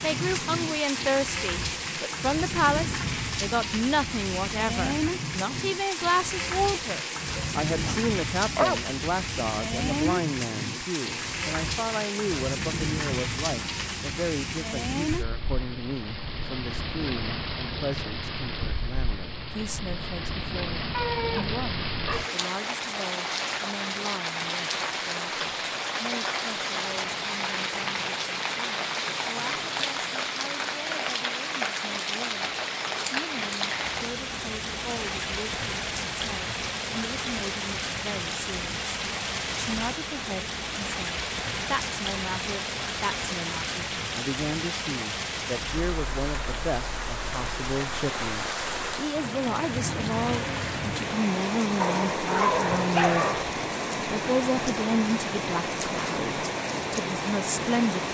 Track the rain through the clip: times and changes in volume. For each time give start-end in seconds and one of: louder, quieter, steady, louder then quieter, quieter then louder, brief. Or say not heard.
0.0-58.1 steady.